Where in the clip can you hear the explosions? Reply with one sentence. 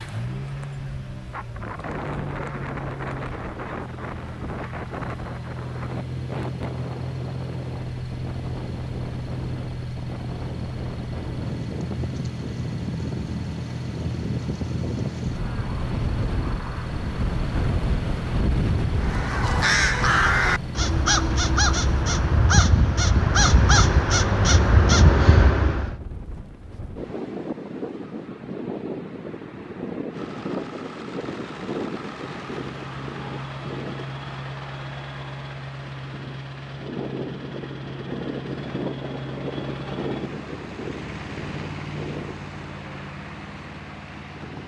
You can't hear the explosions here.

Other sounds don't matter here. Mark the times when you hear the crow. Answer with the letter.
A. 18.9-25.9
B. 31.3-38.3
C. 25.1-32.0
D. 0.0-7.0
A.